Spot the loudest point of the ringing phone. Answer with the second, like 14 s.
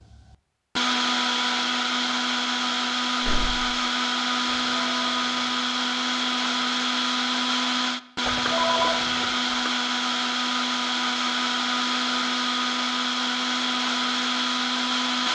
9 s.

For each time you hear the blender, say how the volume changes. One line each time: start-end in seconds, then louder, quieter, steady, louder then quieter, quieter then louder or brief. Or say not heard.
0.0-15.2 steady.